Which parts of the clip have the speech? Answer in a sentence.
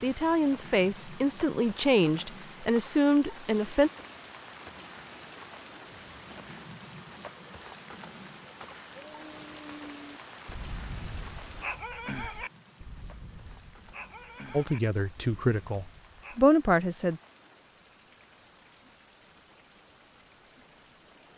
You can hear the speech from 0.0 to 3.9 s and from 14.5 to 17.2 s.